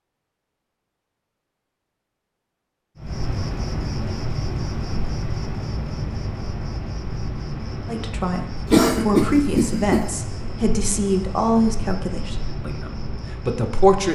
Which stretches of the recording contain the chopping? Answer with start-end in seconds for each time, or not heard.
not heard.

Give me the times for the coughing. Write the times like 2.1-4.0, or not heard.
8.7-10.1.